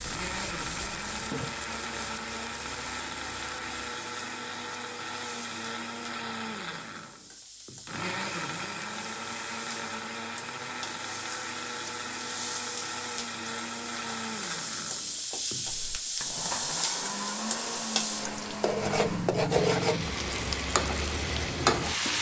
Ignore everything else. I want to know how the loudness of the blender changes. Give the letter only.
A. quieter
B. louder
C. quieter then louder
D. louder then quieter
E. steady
E.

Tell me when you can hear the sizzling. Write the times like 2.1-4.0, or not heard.
0.0-22.1.